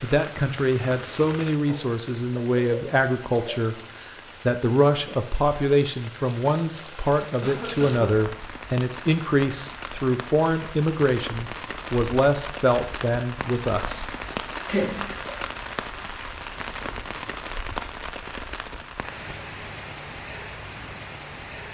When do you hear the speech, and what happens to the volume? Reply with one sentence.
The speech can be heard from 0.0 to 14.1 s, at a steady volume.